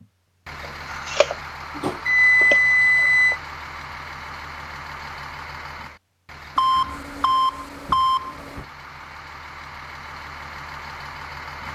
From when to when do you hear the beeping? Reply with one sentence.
The beeping can be heard from 1.1 to 3.4 s and from 6.5 to 8.7 s.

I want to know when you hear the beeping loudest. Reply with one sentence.
The loudest moment of the beeping is at 2 seconds.